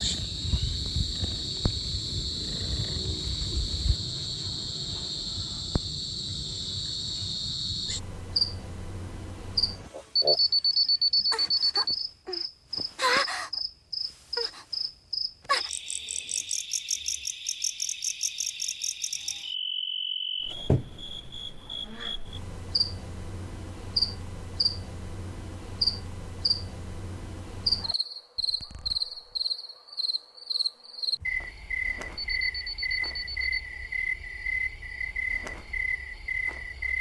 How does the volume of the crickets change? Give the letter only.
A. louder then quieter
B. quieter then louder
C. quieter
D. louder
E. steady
E.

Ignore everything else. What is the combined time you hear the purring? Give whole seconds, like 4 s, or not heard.
4 s.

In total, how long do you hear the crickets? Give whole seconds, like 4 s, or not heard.
37 s.